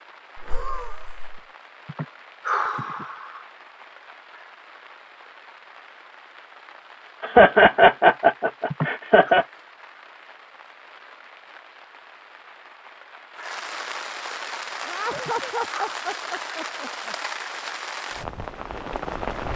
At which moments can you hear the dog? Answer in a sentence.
The dog can't be heard in this clip.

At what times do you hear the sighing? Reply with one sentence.
The sighing can be heard from 1.9 to 3.5 s, from 8.7 to 9.3 s and from 15.2 to 15.9 s.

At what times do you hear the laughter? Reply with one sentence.
You can hear the laughter from 0.3 to 1.4 s, from 7.2 to 9.4 s and from 14.8 to 17.1 s.